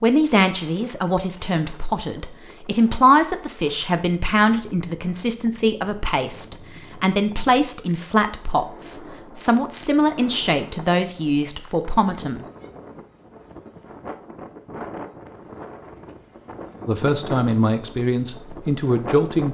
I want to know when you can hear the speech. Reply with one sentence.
You can hear the speech from 0.0 to 12.4 s and from 16.9 to 19.5 s.